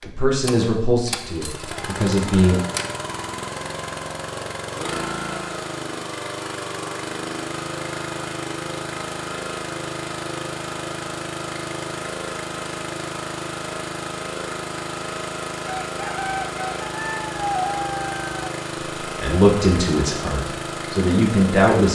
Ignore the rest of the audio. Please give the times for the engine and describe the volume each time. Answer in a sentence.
You can hear the engine from 0.0 to 21.8 s, at a steady volume.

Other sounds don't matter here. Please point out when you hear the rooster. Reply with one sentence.
The rooster can be heard from 15.8 to 18.4 s.